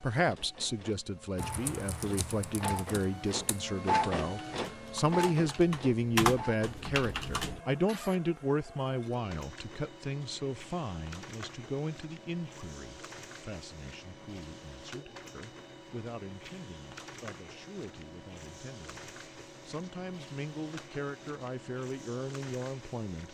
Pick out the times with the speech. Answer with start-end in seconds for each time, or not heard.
0.0-23.3.